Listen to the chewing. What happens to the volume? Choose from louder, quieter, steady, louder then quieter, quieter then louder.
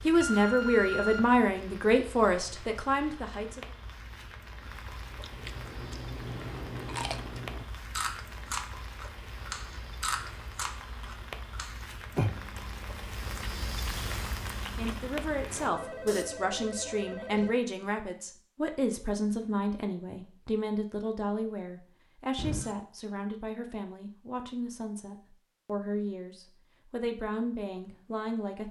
quieter.